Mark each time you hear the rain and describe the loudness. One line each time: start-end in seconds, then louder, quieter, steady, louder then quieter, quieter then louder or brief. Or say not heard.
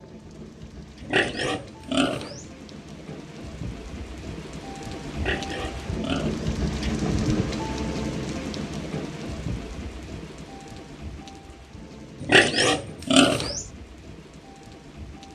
0.0-15.3 louder then quieter.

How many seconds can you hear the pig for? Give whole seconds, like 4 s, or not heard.
4 s.